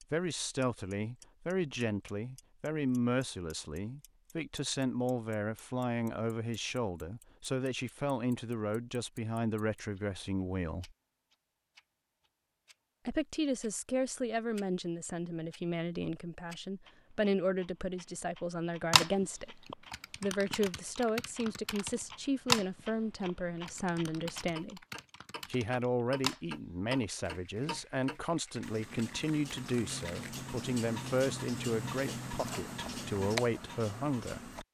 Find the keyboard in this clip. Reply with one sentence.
The keyboard can be heard from 18.9 to 30.4 s.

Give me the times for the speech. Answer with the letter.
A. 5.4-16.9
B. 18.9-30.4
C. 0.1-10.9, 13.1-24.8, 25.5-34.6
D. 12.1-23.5
C.